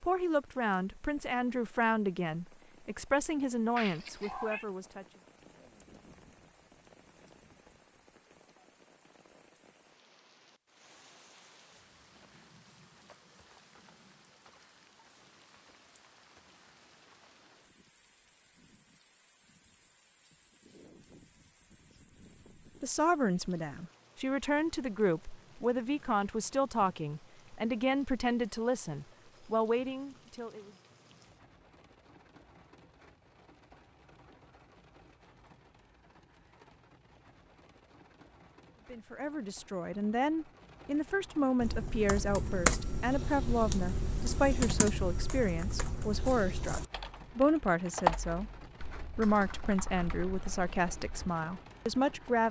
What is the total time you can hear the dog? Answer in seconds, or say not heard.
not heard.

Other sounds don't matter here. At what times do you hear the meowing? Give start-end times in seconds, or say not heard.
3.8-4.7.